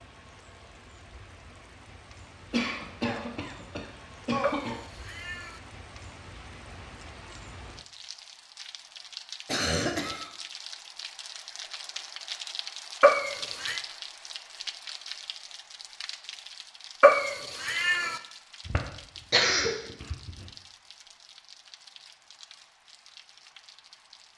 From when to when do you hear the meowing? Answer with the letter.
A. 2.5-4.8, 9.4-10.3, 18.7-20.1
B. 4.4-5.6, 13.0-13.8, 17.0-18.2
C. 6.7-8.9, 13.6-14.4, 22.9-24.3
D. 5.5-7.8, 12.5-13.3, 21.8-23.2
B.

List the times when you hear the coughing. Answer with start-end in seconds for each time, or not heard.
2.5-4.8, 9.4-10.3, 18.7-20.1.